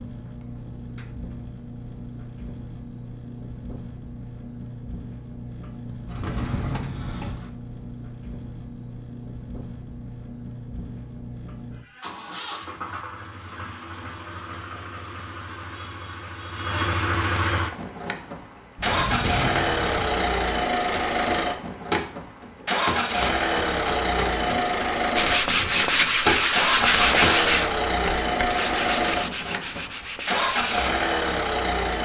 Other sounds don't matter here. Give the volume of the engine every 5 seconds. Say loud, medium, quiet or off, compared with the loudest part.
quiet, quiet, quiet, loud, loud, loud, loud.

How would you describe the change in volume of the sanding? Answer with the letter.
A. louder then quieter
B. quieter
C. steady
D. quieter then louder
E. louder
B.